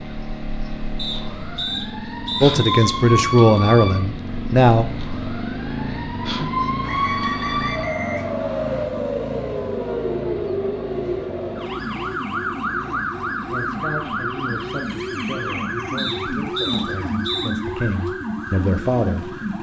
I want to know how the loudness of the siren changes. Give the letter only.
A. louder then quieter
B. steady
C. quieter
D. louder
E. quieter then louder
B.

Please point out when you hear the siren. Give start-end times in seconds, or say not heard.
0.0-19.5.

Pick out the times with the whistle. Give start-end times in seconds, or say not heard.
0.9-3.0, 6.8-8.8, 15.9-17.5.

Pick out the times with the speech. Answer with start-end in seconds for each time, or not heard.
2.4-4.8, 13.4-19.4.